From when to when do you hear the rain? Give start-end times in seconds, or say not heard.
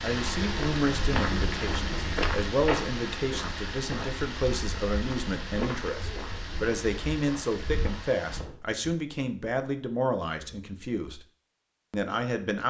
0.0-8.4.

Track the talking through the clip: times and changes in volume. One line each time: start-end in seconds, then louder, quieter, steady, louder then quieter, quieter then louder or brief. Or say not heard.
0.0-11.2 steady
11.9-12.6 brief.